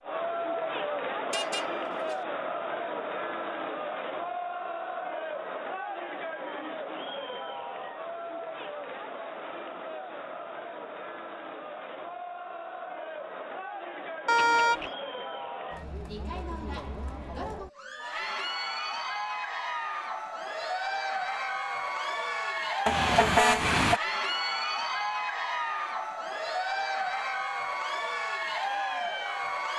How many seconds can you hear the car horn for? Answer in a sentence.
The car horn can be heard for 3 seconds in total.